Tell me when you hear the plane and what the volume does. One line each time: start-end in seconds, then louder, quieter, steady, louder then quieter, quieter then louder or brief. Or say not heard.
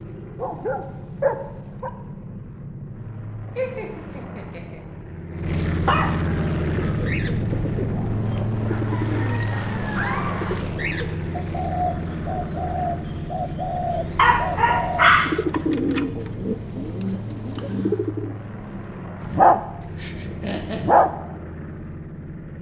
0.0-22.5 louder then quieter.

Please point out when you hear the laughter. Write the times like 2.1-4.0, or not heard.
3.5-4.8, 9.9-10.6, 20.4-20.9.